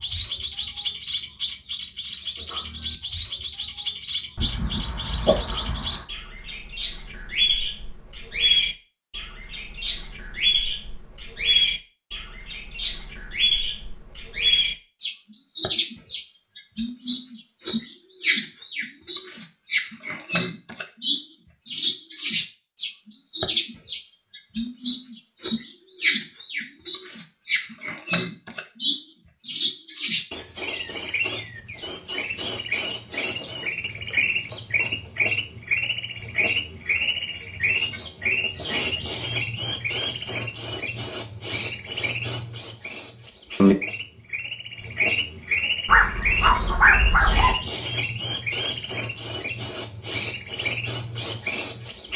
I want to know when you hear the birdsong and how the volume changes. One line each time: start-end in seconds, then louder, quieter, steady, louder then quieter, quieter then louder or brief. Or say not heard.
0.0-52.1 steady.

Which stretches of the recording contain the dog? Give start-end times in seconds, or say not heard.
4.3-6.0, 45.9-47.5.